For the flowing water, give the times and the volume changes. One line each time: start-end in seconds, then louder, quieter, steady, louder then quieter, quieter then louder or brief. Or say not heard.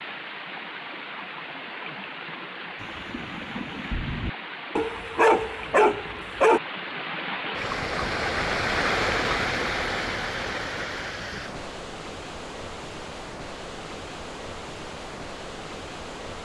0.0-16.4 louder then quieter.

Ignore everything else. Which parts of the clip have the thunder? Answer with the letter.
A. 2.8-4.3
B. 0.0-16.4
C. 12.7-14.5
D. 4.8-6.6
A.